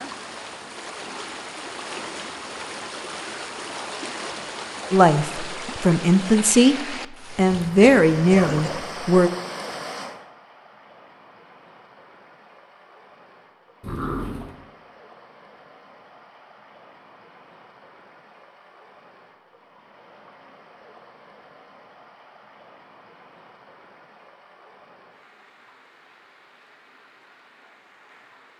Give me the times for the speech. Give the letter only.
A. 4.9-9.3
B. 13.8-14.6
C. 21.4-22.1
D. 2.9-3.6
A.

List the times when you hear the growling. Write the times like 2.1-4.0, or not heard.
13.8-14.6.